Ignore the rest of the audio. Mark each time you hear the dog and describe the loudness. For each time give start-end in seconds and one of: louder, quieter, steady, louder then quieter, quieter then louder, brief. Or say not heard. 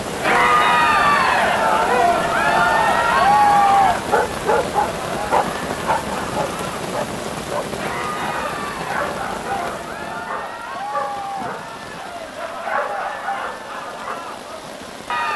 4.1-14.2 quieter.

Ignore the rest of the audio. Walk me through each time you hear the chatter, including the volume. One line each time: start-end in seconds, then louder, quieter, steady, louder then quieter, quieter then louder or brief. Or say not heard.
0.1-15.3 quieter.